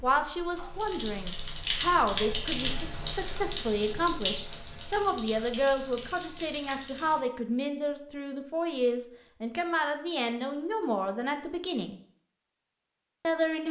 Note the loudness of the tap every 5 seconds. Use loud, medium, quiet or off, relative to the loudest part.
loud, medium, off.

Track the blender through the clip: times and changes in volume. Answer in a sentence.
The blender can't be heard in this clip.